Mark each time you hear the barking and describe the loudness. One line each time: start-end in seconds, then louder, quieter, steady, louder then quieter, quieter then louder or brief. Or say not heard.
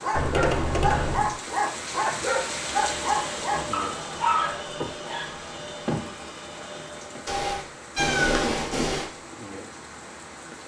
0.0-5.3 steady.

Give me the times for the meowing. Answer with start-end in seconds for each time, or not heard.
0.1-1.4, 7.2-9.1.